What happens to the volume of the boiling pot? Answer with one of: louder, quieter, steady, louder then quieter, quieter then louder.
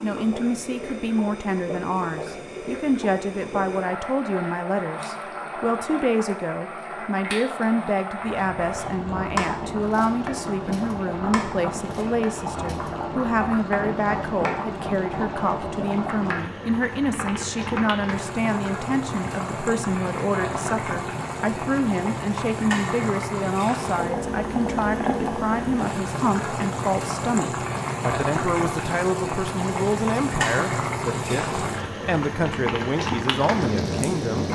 louder.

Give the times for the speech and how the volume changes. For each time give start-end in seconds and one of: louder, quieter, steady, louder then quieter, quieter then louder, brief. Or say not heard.
0.0-34.4 steady.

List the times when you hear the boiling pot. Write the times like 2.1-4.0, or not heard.
0.0-34.4.